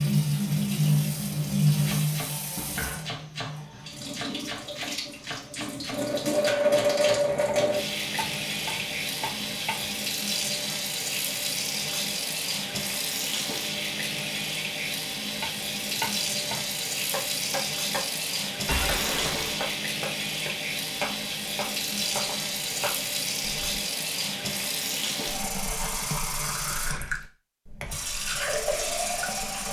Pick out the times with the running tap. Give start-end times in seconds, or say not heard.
0.0-29.6.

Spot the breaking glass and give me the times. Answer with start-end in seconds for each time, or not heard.
18.6-19.8.